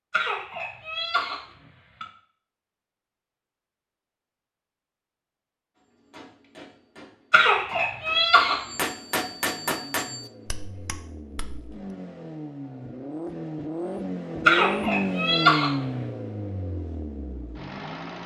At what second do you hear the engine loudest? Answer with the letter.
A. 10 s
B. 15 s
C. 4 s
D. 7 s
B.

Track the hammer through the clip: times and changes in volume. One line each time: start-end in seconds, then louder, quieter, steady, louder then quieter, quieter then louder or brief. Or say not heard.
5.8-11.7 louder then quieter.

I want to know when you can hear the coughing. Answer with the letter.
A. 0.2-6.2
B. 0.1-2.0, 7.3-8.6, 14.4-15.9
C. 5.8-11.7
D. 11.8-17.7
B.